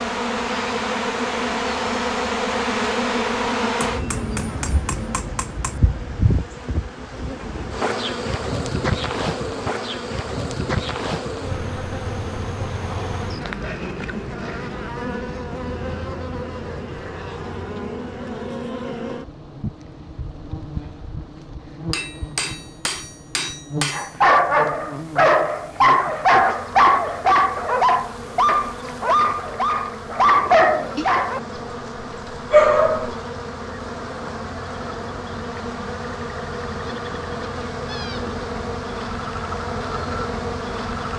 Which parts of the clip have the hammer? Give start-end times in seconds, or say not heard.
3.8-5.8, 21.9-24.1.